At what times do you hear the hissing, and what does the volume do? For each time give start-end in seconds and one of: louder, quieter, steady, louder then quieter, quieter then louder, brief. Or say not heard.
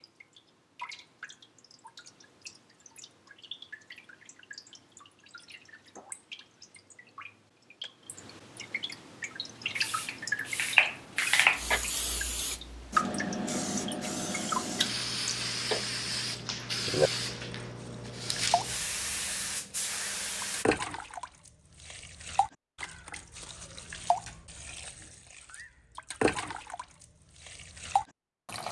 9.6-20.6 quieter.